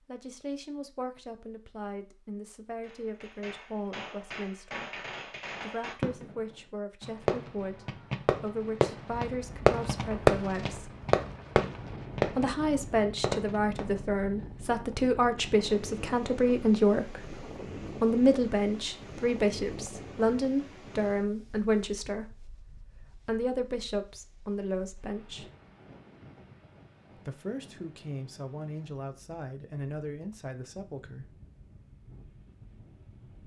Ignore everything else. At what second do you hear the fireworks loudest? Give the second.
10 s.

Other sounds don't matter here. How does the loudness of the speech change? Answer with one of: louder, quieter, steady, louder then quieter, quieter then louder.
louder then quieter.